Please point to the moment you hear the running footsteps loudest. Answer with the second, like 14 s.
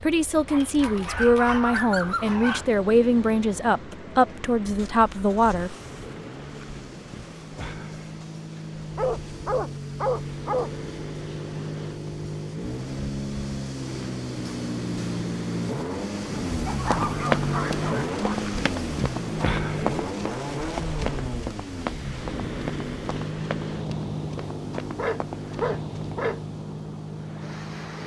17 s.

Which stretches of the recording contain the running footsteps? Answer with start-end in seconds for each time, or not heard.
16.9-26.1.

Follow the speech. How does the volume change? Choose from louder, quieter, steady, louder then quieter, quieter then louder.
steady.